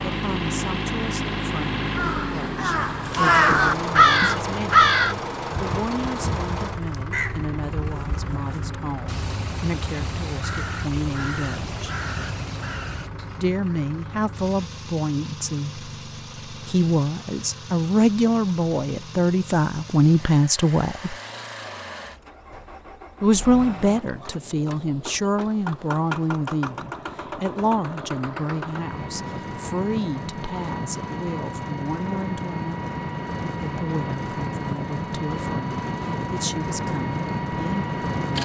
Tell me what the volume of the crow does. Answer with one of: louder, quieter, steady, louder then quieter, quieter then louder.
quieter.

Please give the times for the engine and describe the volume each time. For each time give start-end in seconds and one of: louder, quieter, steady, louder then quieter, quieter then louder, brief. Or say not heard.
0.0-38.4 quieter then louder.